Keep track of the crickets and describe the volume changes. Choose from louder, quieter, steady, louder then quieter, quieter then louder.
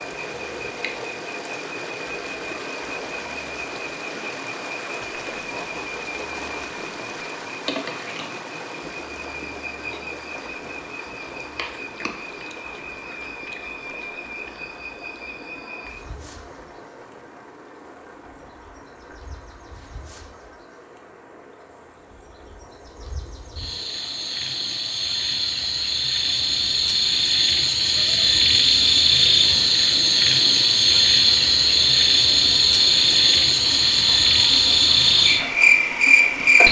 quieter then louder.